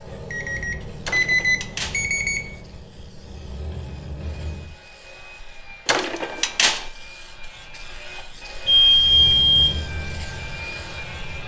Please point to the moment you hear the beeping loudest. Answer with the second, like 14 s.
9 s.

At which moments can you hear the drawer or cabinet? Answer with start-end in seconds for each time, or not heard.
1.1-2.0, 5.8-6.8.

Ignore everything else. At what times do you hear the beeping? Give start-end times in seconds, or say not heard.
0.3-2.5, 8.7-9.8.